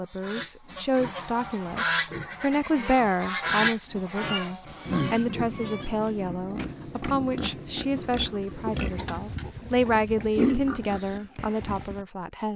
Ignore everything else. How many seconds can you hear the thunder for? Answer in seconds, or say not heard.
4 s.